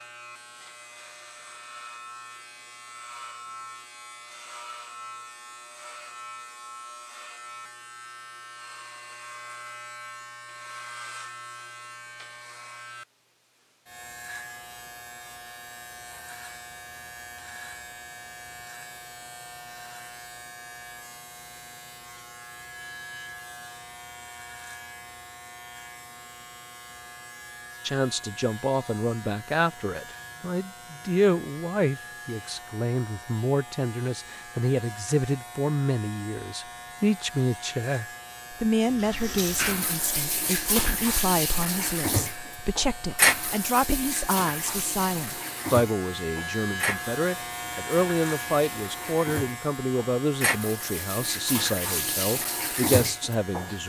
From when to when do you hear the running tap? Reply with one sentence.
The running tap can be heard from 38.9 to 53.8 s.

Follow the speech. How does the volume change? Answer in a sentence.
The volume of the speech stays about the same.